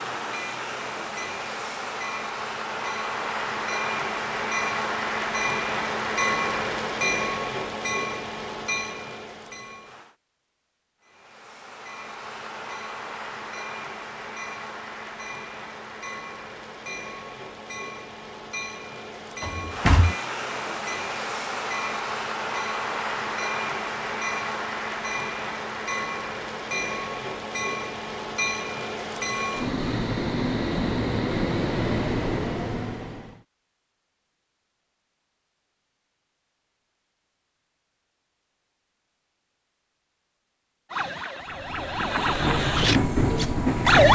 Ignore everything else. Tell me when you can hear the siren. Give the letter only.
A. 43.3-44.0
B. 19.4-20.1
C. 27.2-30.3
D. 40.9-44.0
D.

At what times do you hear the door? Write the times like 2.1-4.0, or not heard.
19.4-20.1.